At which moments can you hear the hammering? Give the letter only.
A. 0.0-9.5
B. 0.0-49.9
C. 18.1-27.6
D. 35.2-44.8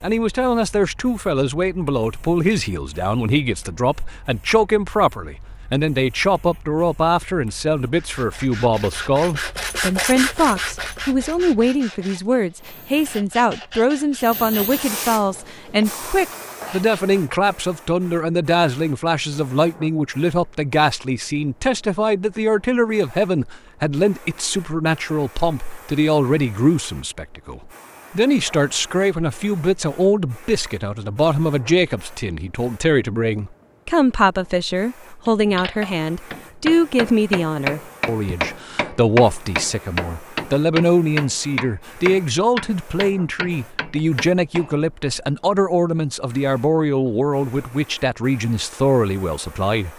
D.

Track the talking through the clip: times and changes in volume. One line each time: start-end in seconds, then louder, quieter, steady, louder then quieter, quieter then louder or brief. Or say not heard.
0.0-49.9 steady.